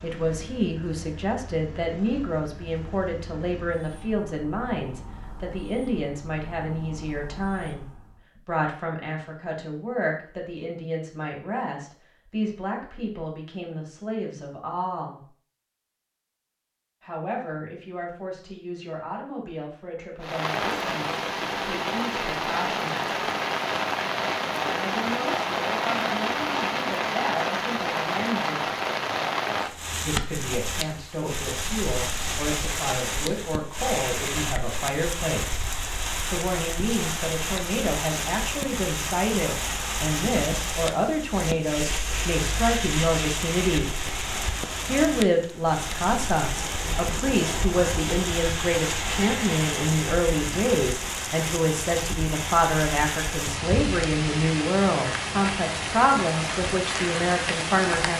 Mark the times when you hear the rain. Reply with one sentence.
You can hear the rain from 20.2 to 58.1 s.